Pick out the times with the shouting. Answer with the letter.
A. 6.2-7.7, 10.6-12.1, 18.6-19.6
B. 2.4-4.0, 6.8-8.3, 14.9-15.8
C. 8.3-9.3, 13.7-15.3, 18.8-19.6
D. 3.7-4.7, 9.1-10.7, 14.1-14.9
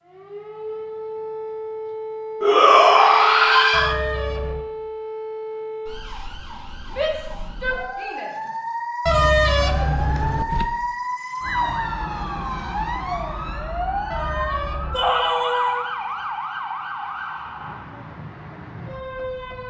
B.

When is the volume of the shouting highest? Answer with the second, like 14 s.
3 s.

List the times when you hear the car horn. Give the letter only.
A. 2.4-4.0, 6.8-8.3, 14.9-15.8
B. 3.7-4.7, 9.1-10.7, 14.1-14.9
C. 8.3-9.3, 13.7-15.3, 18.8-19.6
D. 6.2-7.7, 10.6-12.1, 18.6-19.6
B.